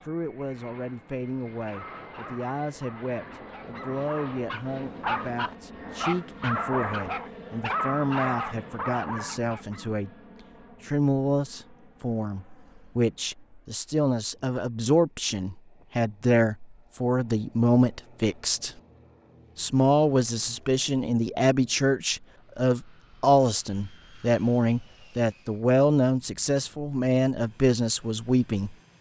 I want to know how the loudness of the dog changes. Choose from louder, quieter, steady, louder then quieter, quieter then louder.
louder.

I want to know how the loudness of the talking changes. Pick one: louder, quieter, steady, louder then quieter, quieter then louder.
louder.